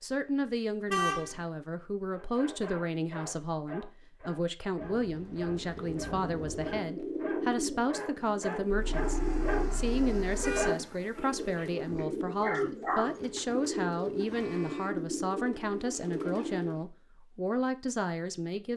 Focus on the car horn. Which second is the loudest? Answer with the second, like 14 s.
1 s.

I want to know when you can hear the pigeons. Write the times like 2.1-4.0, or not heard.
5.5-16.8.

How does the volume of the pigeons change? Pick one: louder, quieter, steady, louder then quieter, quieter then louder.
steady.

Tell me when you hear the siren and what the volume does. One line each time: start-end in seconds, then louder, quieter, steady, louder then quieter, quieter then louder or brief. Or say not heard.
not heard.